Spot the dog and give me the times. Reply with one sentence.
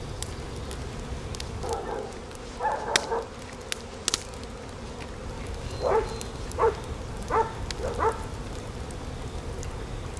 The dog can be heard from 1.6 to 3.3 s and from 5.7 to 8.3 s.